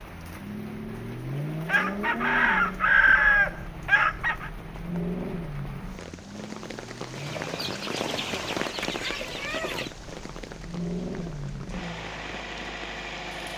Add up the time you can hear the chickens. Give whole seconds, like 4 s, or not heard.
6 s.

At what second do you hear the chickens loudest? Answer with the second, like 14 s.
3 s.